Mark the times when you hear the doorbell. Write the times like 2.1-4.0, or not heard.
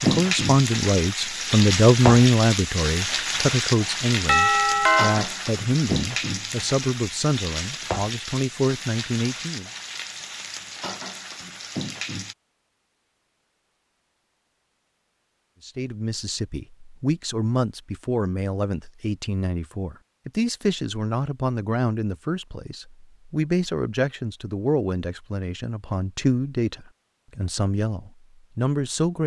4.2-5.2.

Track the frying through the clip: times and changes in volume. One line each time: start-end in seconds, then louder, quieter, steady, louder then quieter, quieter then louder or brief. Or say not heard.
0.0-12.3 quieter.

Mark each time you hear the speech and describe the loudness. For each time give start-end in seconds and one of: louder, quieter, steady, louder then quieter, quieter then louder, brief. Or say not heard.
0.0-9.7 quieter
15.7-29.2 steady.